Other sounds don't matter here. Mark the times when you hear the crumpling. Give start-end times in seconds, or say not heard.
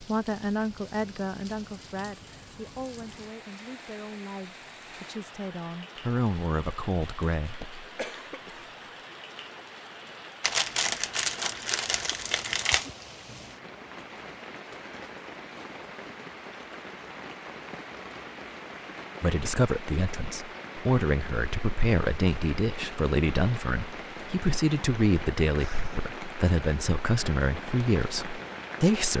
10.4-12.8.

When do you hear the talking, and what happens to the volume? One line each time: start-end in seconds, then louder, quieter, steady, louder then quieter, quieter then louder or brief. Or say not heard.
0.0-7.7 quieter then louder
19.2-29.1 steady.